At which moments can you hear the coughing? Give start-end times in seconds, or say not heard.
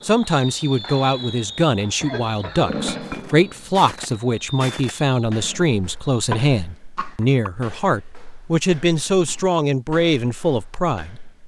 2.0-2.8, 6.3-7.5.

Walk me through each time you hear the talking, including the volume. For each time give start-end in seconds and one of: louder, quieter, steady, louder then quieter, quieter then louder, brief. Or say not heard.
0.0-11.3 steady.